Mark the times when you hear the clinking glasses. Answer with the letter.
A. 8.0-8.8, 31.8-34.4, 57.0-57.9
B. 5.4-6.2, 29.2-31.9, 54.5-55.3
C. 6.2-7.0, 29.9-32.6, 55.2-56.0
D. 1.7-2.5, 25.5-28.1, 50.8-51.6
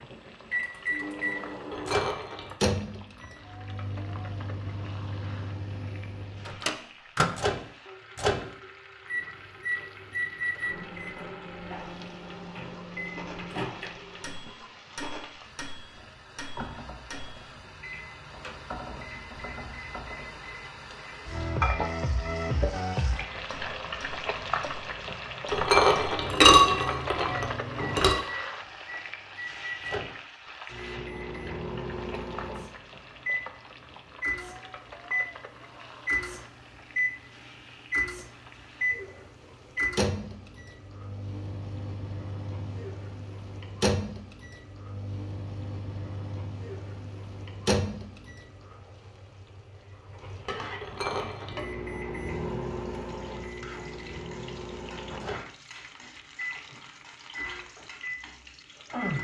D.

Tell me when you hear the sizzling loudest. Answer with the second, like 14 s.
22 s.